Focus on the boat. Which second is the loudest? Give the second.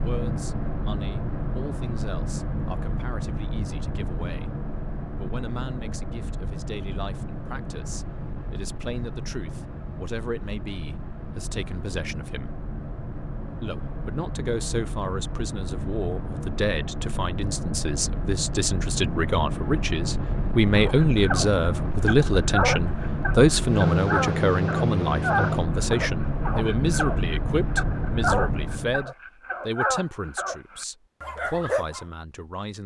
24 s.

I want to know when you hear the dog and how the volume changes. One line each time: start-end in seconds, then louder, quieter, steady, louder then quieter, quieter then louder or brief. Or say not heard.
20.8-32.0 steady.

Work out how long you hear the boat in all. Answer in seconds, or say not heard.
29 s.